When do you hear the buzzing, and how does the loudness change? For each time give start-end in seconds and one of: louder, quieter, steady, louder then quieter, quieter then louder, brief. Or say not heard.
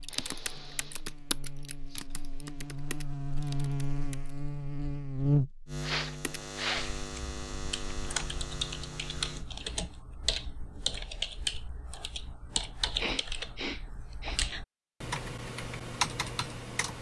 0.0-9.5 louder then quieter.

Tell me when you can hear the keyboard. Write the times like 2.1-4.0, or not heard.
0.0-4.3, 6.2-16.9.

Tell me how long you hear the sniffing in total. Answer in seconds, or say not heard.
4 s.